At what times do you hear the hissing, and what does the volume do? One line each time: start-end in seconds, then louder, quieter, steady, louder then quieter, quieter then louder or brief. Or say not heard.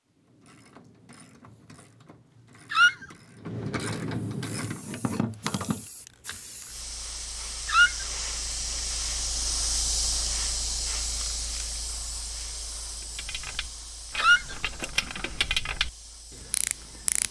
4.6-17.2 louder then quieter.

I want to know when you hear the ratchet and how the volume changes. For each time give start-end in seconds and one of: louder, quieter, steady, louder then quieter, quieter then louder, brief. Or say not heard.
0.1-6.4 louder
13.0-17.2 louder then quieter.